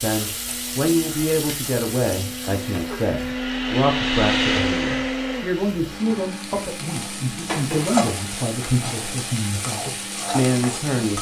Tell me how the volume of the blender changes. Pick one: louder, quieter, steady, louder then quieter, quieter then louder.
louder then quieter.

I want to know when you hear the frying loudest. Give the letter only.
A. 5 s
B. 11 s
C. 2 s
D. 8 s
D.